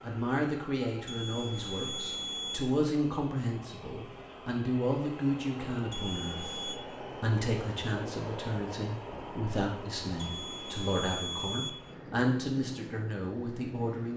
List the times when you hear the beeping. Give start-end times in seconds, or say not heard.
1.1-2.6, 5.9-6.8, 10.2-11.7.